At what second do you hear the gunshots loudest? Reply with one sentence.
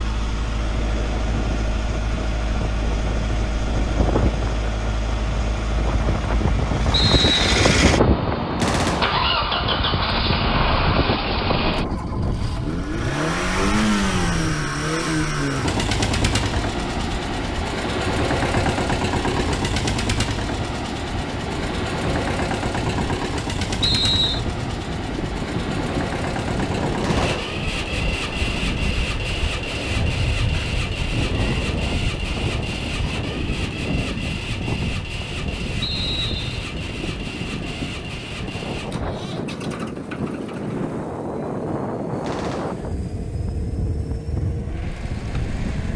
The loudest moment of the gunshots is at 9 seconds.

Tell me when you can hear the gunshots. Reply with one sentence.
The gunshots can be heard from 8.6 to 9.2 s, from 27.0 to 27.6 s and from 42.2 to 42.9 s.